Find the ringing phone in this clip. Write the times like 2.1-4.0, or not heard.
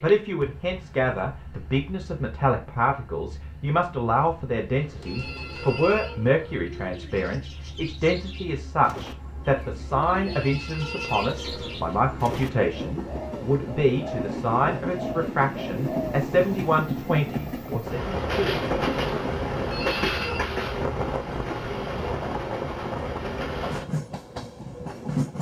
5.0-6.6, 10.2-11.8, 19.7-20.5.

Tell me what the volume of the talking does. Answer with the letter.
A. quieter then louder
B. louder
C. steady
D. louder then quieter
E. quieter
C.